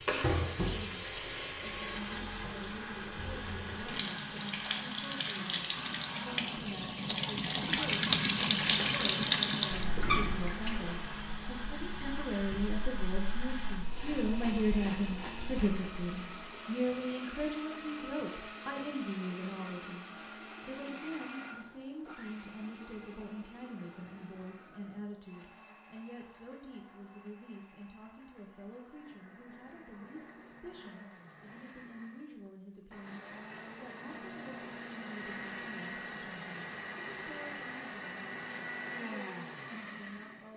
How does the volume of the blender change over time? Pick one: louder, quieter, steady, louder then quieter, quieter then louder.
quieter then louder.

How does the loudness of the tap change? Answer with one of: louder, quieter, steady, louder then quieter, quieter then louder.
louder then quieter.